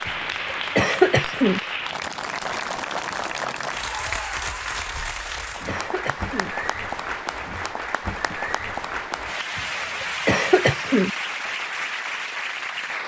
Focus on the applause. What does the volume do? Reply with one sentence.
The loudness of the applause stays about the same.